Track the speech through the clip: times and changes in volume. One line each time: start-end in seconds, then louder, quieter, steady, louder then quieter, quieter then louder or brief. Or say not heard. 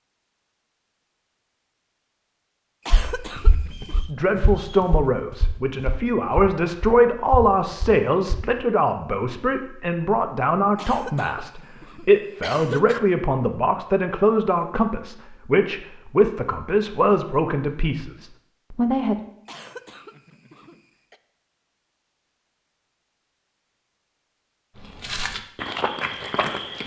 4.0-19.1 steady.